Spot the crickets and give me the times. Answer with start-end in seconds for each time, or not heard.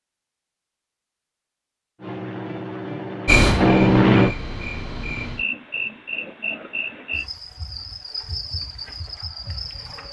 3.2-10.0.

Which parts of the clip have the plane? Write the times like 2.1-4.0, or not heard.
1.9-4.3.